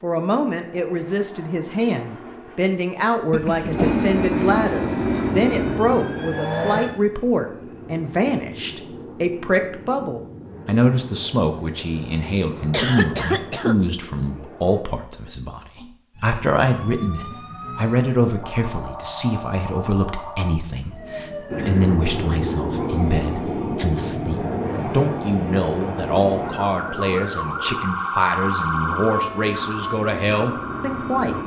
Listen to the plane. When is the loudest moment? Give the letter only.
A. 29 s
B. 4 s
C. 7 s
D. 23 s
B.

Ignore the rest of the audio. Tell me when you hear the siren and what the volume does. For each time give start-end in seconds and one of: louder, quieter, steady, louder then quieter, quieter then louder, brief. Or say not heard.
4.9-7.0 brief
16.1-31.4 louder.